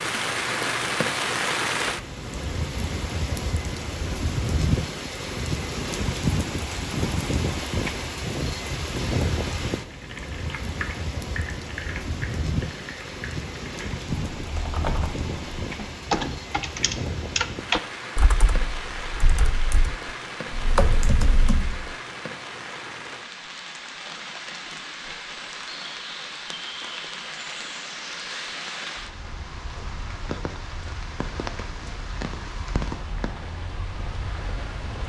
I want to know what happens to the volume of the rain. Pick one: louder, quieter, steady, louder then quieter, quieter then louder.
quieter.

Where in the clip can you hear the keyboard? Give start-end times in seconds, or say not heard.
9.9-21.9.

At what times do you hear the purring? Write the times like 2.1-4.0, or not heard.
not heard.